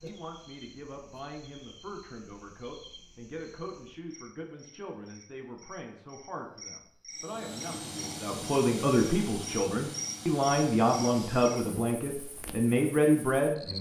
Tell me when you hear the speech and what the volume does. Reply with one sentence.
The speech can be heard from 0.0 to 13.7 s, getting louder.